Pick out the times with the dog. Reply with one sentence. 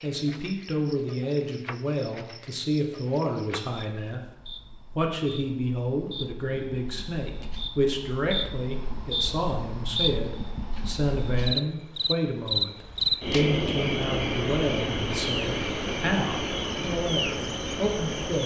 The dog can't be heard in this clip.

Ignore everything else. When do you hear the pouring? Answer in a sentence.
The pouring can't be heard in this clip.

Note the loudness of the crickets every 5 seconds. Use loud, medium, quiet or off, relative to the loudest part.
quiet, medium, loud, loud.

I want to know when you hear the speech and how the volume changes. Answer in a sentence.
You can hear the speech from 0.0 to 18.4 s, at a steady volume.